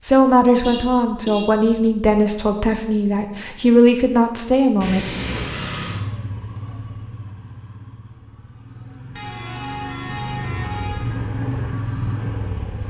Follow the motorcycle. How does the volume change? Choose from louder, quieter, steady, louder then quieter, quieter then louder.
quieter then louder.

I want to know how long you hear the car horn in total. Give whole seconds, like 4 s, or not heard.
4 s.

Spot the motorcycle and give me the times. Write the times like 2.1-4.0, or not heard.
5.2-12.8.